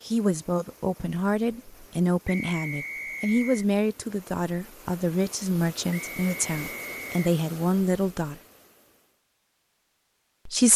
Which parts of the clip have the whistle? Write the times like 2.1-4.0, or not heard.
2.2-3.6, 5.9-7.2.